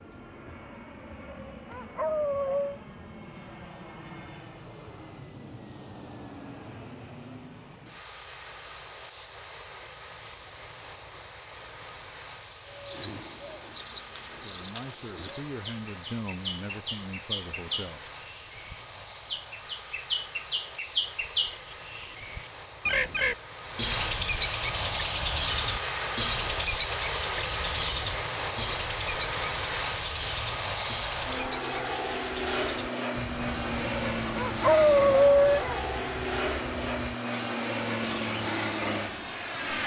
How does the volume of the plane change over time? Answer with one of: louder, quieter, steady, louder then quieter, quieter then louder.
louder.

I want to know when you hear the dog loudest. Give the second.
35 s.